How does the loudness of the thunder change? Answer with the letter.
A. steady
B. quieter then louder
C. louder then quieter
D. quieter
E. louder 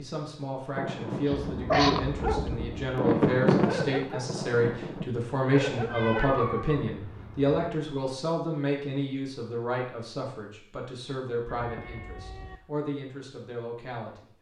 C.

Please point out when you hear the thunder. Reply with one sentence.
The thunder can be heard from 0.8 to 5.1 s.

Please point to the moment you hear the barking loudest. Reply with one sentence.
The volume of the barking peaks at 2 seconds.